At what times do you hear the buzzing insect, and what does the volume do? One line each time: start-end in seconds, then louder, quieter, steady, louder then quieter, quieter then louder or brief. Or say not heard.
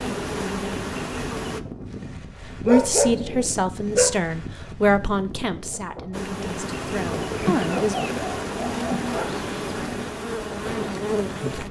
0.0-1.6 brief
6.1-11.6 steady.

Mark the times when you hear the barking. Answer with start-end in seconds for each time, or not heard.
2.6-4.2, 7.7-9.2.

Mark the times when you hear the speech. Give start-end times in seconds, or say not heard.
2.5-8.0.